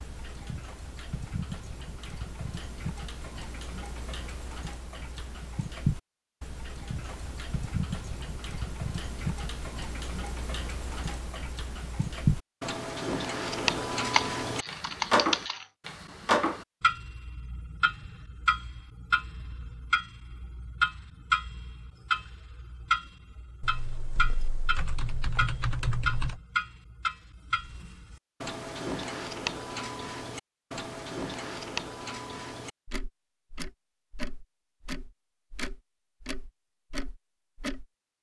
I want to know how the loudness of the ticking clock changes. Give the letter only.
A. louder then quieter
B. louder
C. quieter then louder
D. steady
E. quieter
A.